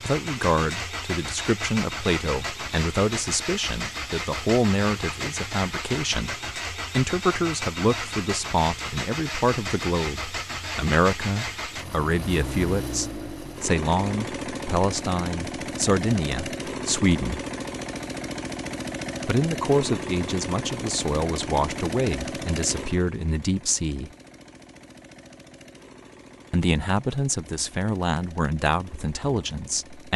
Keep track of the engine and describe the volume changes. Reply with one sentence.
The volume of the engine goes down.